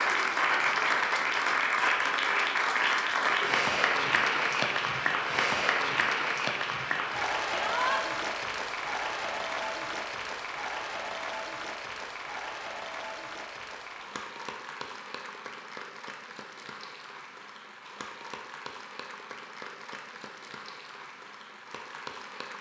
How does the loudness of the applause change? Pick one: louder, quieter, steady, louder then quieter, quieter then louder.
quieter.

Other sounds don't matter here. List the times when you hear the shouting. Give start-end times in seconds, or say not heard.
7.5-8.0.